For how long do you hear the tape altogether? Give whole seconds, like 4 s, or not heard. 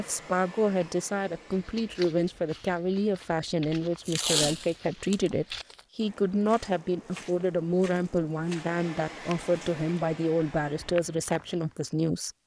2 s.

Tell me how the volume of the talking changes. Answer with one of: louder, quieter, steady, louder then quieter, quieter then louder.
steady.